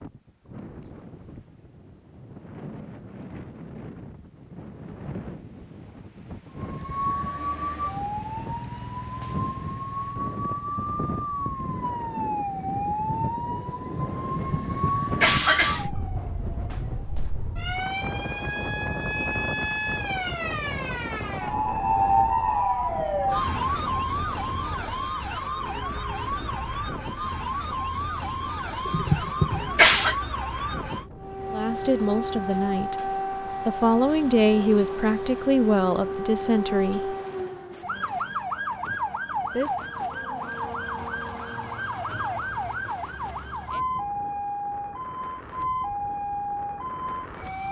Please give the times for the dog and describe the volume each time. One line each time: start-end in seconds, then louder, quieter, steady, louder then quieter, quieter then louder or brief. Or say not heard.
not heard.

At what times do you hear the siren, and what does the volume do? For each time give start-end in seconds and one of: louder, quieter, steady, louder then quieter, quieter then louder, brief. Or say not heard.
6.5-47.6 steady.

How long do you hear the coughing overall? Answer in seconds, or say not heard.
3 s.